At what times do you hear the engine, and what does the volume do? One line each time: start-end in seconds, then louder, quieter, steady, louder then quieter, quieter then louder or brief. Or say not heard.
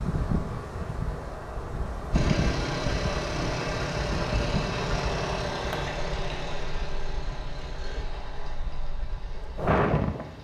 2.1-10.4 quieter.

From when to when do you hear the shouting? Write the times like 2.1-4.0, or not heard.
not heard.